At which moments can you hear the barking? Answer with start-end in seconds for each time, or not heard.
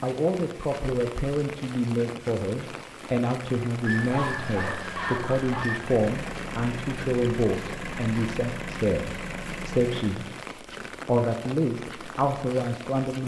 3.8-5.8.